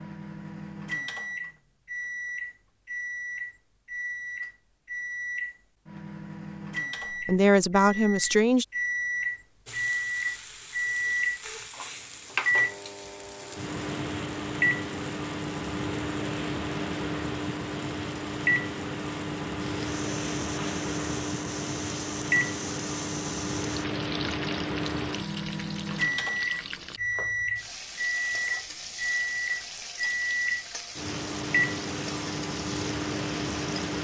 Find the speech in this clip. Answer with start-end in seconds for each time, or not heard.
7.2-8.7.